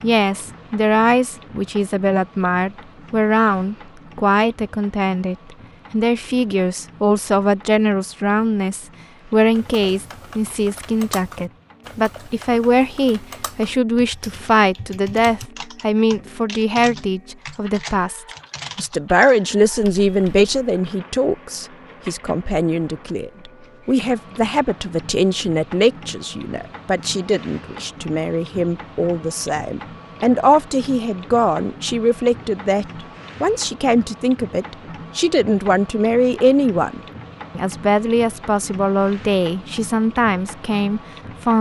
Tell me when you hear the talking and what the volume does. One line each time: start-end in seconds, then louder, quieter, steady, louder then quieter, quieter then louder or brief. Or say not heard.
0.0-41.5 steady.